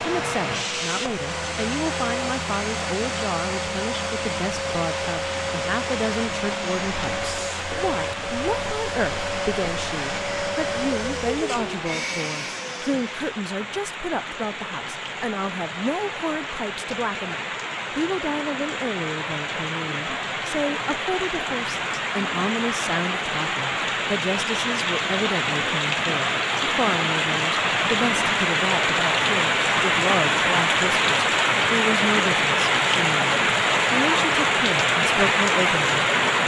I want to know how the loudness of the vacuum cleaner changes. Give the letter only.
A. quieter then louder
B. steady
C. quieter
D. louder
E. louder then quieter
B.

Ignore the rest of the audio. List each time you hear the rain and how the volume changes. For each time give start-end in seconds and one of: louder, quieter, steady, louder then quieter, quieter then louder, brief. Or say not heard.
0.1-36.4 louder.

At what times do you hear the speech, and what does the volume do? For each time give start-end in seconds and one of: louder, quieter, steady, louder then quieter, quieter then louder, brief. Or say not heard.
0.0-36.4 steady.